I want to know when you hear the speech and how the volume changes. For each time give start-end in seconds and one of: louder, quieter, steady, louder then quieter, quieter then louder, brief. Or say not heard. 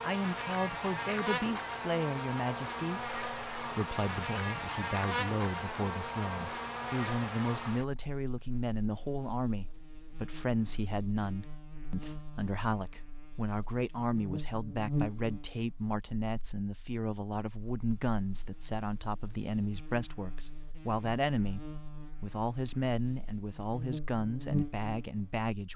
0.0-25.7 steady.